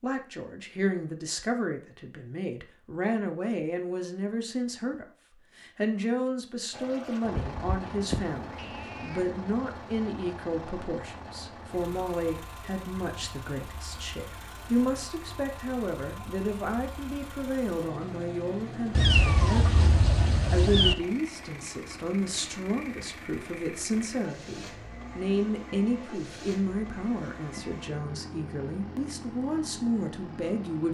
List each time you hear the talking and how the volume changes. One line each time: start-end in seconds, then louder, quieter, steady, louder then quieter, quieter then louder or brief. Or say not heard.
0.0-30.8 steady.